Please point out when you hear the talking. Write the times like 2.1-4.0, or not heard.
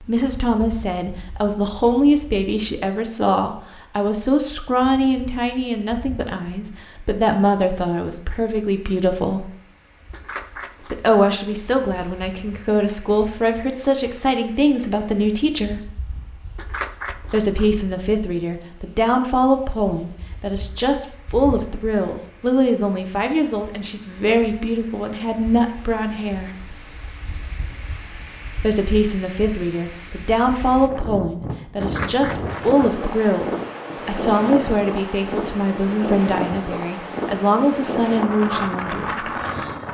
0.0-9.5, 10.9-15.9, 17.3-26.5, 28.6-39.2.